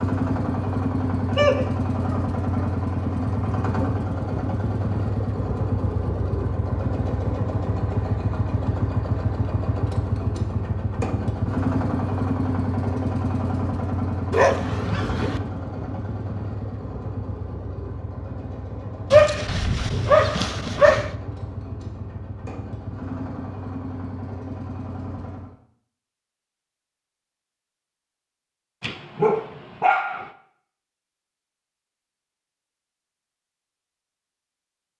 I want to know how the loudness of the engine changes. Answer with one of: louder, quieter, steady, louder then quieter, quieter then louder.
quieter.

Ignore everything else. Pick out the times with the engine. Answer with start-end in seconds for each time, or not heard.
0.0-25.6.